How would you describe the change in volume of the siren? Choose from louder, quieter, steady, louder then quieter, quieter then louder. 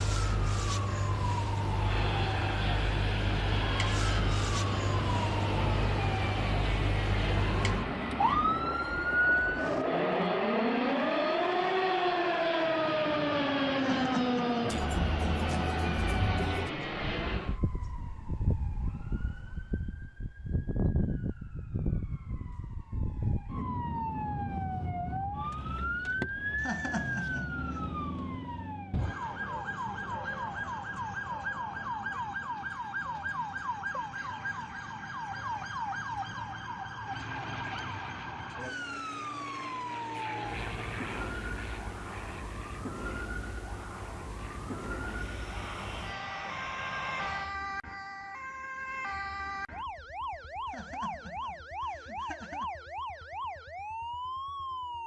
quieter.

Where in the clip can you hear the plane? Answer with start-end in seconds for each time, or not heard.
1.6-17.6, 37.0-47.5.